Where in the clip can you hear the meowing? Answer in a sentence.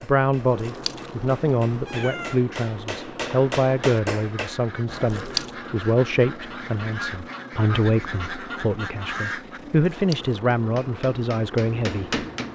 You can hear the meowing from 0.3 to 2.4 s, from 4.8 to 5.5 s and from 9.8 to 10.4 s.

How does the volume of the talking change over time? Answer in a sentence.
The loudness of the talking stays about the same.